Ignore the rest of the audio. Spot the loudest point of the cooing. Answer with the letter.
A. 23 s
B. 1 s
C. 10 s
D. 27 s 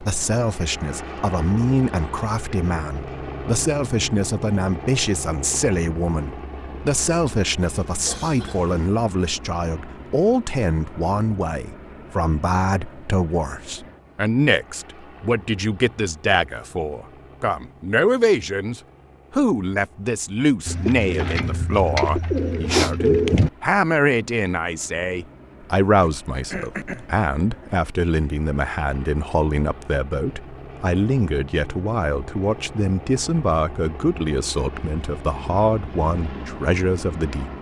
A.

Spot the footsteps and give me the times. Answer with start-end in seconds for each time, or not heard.
not heard.